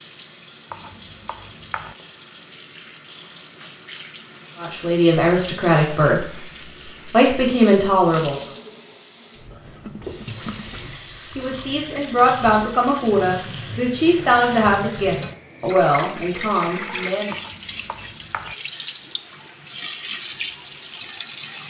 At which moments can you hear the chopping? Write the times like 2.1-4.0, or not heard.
0.7-1.9, 17.3-18.6.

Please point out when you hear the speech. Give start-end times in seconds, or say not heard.
4.5-8.3, 11.3-17.4.